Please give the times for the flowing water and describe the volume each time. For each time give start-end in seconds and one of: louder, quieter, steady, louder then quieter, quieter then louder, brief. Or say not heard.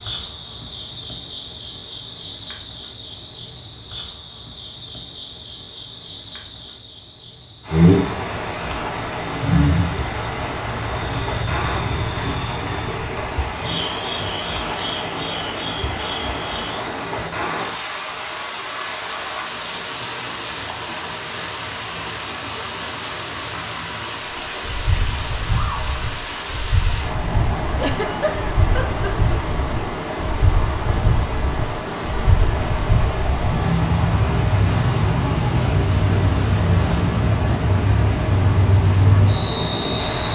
7.6-40.2 steady.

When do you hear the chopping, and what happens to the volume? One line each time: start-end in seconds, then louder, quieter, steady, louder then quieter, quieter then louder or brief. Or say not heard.
not heard.